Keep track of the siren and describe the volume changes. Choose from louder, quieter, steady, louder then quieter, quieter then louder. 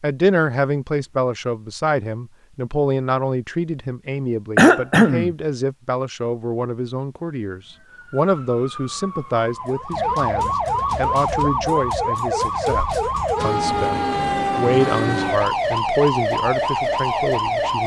louder.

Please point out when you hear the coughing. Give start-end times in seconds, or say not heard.
4.5-5.3.